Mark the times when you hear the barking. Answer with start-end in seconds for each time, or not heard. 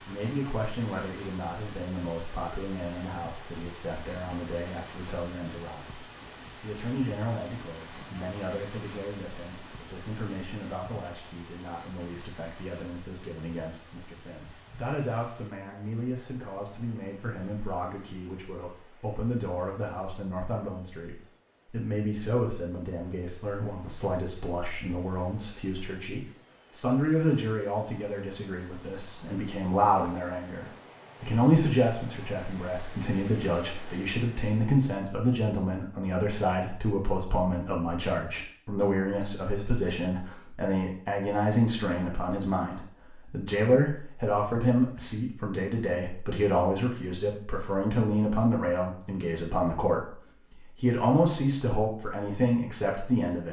not heard.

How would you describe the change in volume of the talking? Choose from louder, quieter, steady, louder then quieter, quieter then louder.
louder.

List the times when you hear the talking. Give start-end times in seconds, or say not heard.
0.1-53.4.